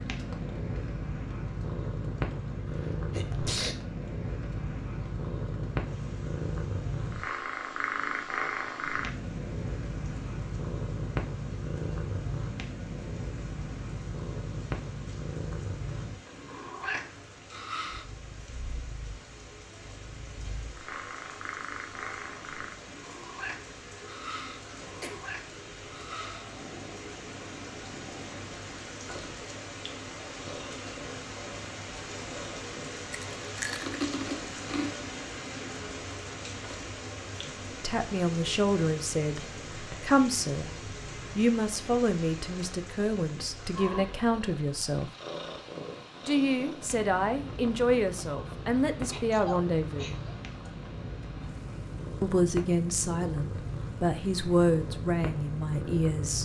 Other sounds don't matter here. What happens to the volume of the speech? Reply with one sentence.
The volume of the speech stays about the same.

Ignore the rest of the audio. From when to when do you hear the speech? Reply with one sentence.
The speech can be heard from 37.5 to 40.7 s, from 41.4 to 45.1 s, from 46.2 to 50.2 s and from 52.2 to 56.3 s.